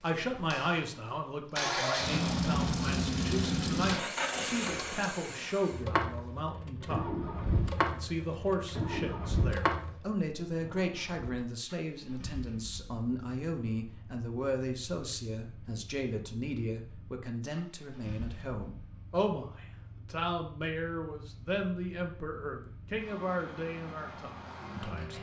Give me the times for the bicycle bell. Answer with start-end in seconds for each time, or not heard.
not heard.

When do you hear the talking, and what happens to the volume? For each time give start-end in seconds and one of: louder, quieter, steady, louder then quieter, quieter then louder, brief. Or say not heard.
0.0-25.1 steady.